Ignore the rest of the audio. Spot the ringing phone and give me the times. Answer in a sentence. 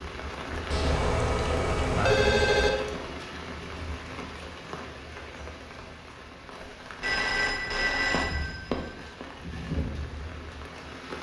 The ringing phone can be heard from 0.7 to 2.7 s and from 6.6 to 9.2 s.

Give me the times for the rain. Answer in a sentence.
The rain can be heard from 0.0 to 11.1 s.